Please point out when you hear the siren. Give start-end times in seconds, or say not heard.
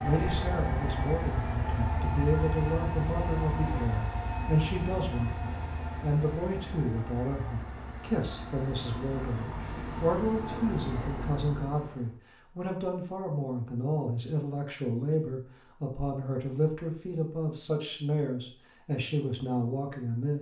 not heard.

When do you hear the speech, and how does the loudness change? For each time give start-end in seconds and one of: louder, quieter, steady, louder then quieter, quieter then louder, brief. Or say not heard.
0.0-20.3 steady.